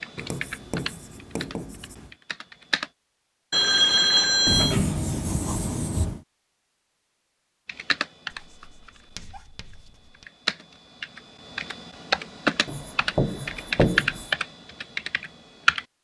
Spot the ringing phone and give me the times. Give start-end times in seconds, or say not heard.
3.5-4.8.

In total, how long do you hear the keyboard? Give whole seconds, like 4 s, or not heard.
11 s.